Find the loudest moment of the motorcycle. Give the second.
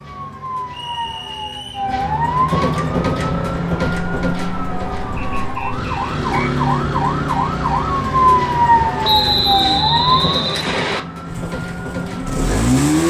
13 s.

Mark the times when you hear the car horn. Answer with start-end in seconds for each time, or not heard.
not heard.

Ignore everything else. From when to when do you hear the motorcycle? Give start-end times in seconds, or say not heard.
2.7-9.8, 11.3-13.0.